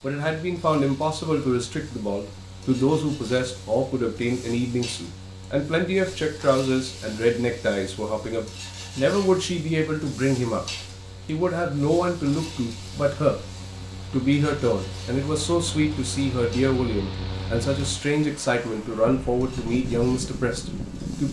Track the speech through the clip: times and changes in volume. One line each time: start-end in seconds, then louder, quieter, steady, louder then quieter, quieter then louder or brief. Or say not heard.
0.0-10.7 steady
11.2-13.5 brief
14.1-21.2 steady.